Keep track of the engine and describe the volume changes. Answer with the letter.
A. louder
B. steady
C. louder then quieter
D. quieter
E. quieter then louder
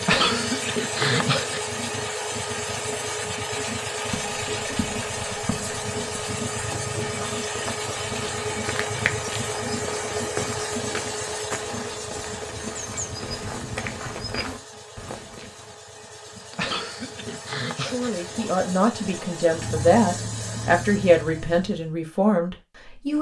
E.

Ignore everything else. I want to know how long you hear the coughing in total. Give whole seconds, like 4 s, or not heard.
3 s.